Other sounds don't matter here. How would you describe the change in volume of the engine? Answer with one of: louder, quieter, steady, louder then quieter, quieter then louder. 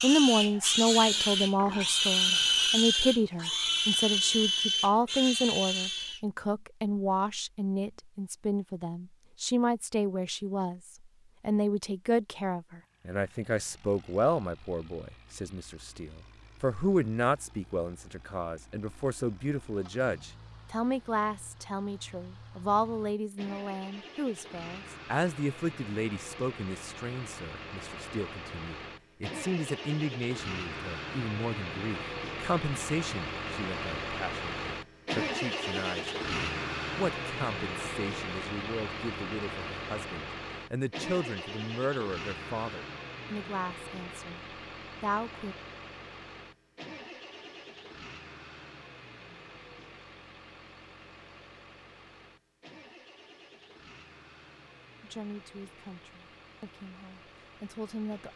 louder then quieter.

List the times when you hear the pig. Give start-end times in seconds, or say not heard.
0.0-6.2.